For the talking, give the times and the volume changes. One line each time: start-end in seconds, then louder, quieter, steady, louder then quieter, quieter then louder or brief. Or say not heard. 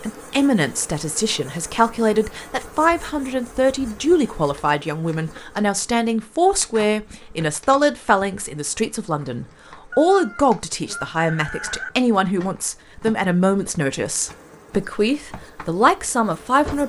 0.0-16.8 steady.